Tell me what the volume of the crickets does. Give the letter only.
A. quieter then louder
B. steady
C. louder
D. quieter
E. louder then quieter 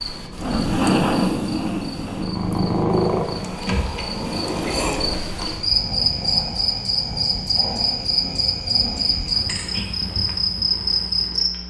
A.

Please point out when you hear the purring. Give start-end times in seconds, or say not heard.
0.1-11.6.